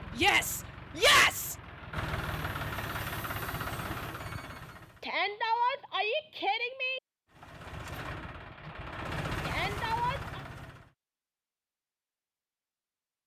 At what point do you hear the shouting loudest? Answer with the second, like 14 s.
1 s.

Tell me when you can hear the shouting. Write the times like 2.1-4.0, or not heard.
0.1-1.6, 5.0-7.0, 9.4-10.4.